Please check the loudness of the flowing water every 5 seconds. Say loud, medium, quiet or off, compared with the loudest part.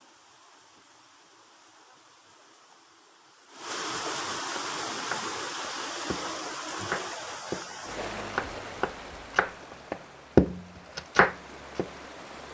loud, loud, medium.